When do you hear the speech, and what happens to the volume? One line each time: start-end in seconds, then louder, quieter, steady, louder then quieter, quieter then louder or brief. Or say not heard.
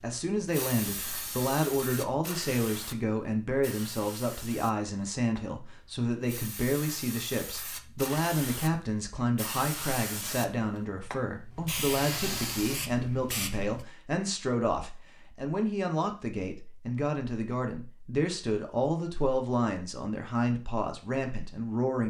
0.0-22.0 steady.